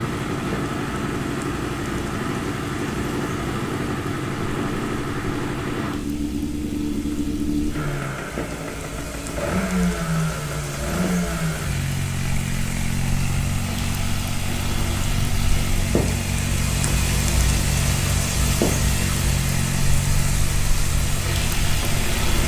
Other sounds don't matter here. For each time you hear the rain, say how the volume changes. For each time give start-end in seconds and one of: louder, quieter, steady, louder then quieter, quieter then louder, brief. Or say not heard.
0.0-22.4 louder.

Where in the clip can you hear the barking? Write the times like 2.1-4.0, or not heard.
not heard.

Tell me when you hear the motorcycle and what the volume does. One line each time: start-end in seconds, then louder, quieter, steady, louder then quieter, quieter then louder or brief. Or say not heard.
0.0-22.4 steady.